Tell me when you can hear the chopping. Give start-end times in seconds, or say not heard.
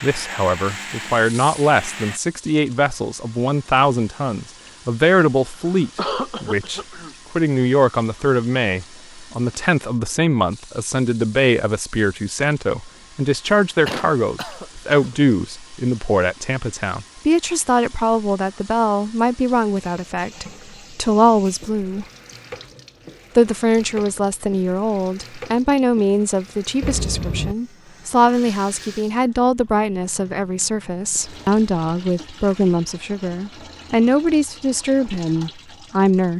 not heard.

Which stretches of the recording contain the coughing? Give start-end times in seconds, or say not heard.
5.6-7.2, 13.8-15.2, 26.8-27.6.